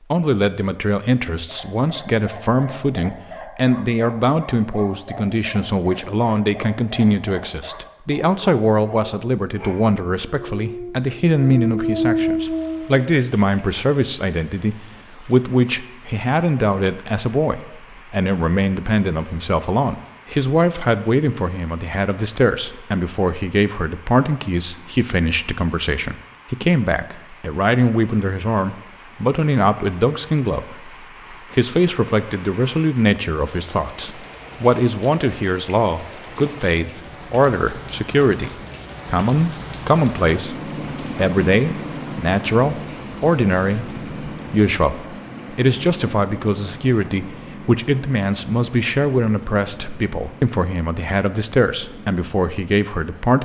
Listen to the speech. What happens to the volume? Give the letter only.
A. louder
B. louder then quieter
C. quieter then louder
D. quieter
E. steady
E.